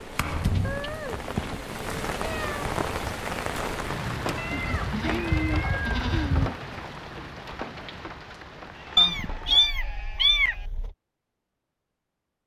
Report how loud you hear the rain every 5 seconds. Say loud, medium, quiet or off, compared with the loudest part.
loud, medium, off.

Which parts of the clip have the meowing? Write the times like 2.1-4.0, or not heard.
0.6-1.2, 2.1-2.6, 4.3-6.0, 8.9-10.9.